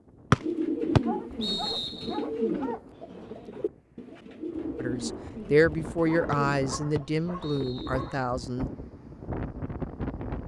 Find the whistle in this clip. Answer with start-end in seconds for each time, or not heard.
0.3-2.1, 6.3-8.2.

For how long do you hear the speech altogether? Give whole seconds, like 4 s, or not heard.
4 s.